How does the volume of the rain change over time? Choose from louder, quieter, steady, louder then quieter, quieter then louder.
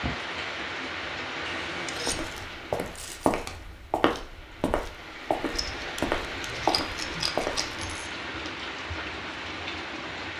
quieter then louder.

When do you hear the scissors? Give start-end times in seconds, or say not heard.
1.4-2.4, 5.5-7.8.